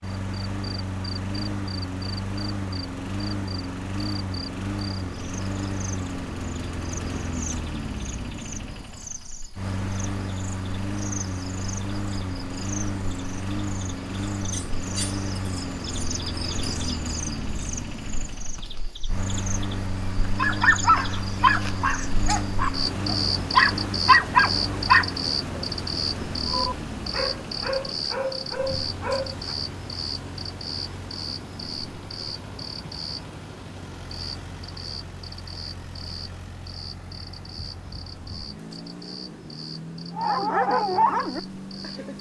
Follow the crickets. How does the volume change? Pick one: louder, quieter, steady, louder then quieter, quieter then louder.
louder then quieter.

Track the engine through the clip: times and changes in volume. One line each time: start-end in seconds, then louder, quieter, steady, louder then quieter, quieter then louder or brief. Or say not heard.
0.0-42.1 quieter.